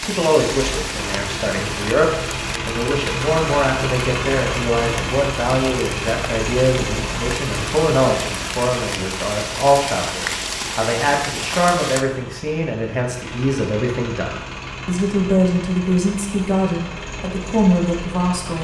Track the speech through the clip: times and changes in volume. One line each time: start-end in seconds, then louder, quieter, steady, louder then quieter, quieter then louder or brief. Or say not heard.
0.0-18.5 steady.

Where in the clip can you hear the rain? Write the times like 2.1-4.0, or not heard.
0.0-12.1.